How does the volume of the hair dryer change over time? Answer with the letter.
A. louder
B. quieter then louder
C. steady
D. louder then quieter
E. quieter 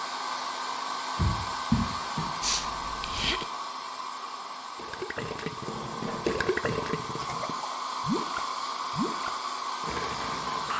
B.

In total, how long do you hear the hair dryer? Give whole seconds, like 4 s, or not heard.
11 s.